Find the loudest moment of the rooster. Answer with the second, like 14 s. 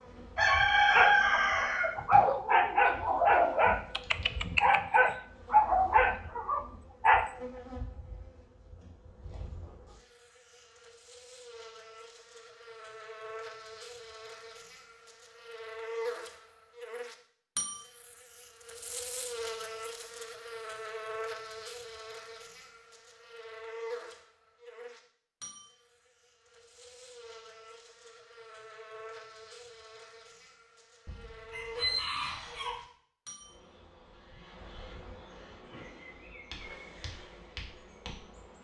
1 s.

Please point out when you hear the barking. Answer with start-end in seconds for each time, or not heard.
0.8-7.3.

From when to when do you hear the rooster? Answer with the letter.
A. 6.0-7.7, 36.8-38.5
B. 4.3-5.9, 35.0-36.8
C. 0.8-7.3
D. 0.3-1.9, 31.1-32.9
D.